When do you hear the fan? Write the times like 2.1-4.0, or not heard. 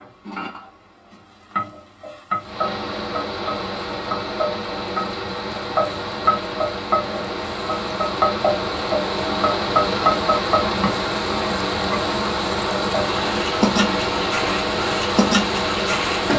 2.4-16.3.